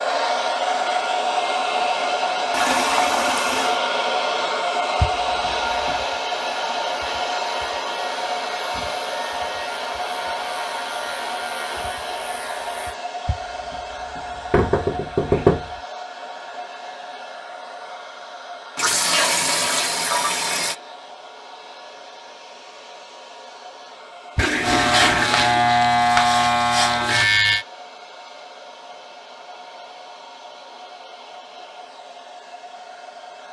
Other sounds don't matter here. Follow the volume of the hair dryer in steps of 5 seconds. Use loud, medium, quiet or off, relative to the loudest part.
loud, loud, medium, quiet, quiet, quiet, quiet.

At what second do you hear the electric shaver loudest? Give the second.
26 s.